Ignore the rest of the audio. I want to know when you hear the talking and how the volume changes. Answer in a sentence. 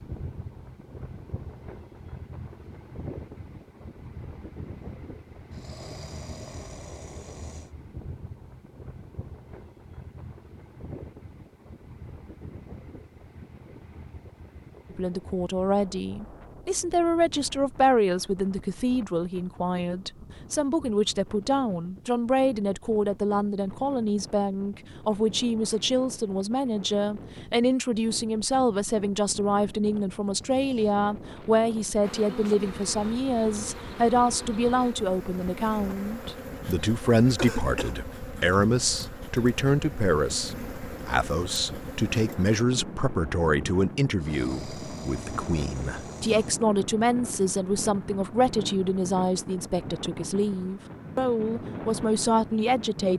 The talking can be heard from 14.9 to 53.1 s, at a steady volume.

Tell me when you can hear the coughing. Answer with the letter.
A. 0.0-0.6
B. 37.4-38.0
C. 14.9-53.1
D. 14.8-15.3
B.